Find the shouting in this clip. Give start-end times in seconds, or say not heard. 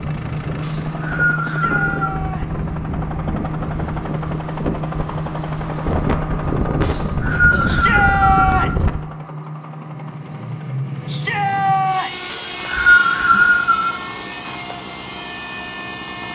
1.4-2.6, 7.7-8.8, 11.1-12.1.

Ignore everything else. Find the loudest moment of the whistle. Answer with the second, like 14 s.
13 s.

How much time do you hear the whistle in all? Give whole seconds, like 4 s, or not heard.
5 s.